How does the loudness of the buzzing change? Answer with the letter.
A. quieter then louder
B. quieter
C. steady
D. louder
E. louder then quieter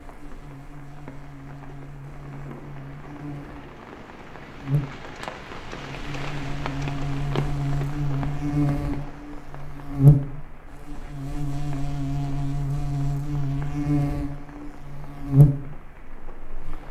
D.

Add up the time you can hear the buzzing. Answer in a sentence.
The buzzing can be heard for 17 seconds in total.